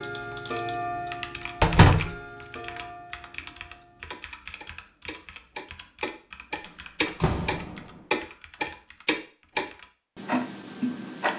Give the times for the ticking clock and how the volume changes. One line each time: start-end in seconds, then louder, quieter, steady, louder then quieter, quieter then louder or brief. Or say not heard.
0.0-11.3 quieter then louder.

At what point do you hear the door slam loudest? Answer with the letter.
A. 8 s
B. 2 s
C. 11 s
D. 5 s
B.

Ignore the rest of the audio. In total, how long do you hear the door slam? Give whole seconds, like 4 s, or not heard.
2 s.